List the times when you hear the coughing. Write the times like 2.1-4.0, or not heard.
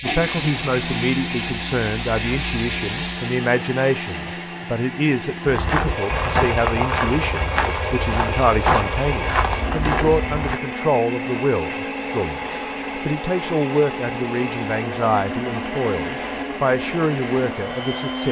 not heard.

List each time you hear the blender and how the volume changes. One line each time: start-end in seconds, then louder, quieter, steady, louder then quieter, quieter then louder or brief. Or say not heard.
0.0-18.2 steady.